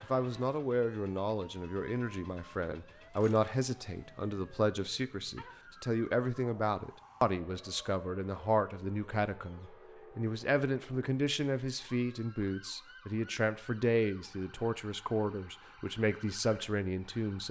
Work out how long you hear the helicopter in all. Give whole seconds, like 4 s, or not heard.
not heard.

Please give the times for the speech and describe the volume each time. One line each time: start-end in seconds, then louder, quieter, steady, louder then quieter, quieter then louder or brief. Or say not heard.
0.0-17.4 steady.